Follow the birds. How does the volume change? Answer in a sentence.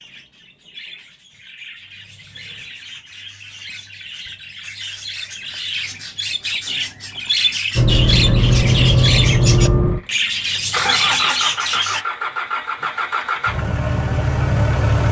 The volume of the birds goes up.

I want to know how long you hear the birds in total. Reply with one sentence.
The birds can be heard for 12 seconds in total.